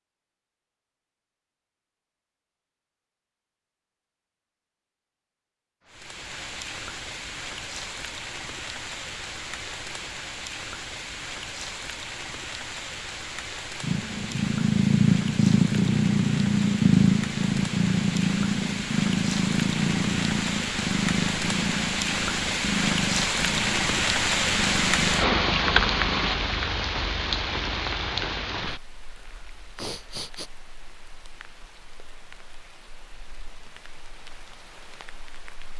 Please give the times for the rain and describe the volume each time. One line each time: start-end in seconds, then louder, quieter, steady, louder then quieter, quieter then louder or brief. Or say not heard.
5.8-35.7 louder then quieter.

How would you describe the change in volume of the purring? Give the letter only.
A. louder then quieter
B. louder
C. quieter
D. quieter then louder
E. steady
C.